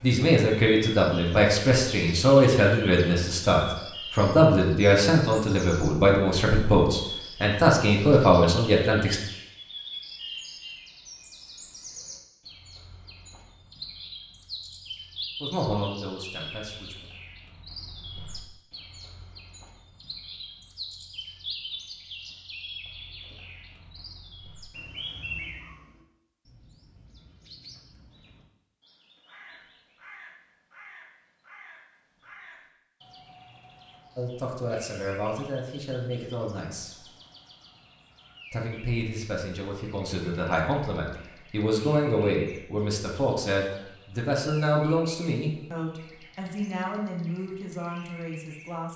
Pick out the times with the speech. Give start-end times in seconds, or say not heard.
0.0-9.2, 15.4-17.0, 34.1-37.0, 38.5-48.9.